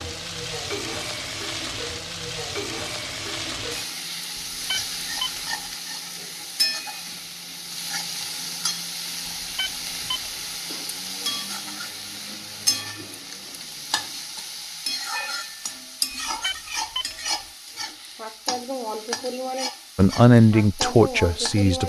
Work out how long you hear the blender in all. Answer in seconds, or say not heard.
not heard.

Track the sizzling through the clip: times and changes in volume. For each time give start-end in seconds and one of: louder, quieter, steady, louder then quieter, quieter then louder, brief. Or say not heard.
0.0-21.8 steady.